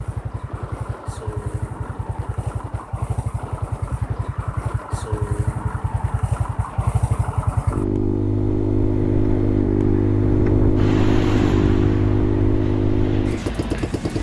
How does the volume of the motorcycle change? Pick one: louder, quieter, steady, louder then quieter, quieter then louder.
louder.